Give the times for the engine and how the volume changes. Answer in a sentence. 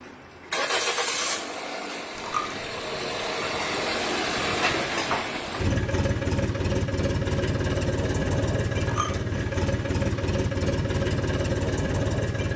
The engine can be heard from 0.0 to 12.5 s, at a steady volume.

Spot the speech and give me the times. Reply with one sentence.
The speech can't be heard in this clip.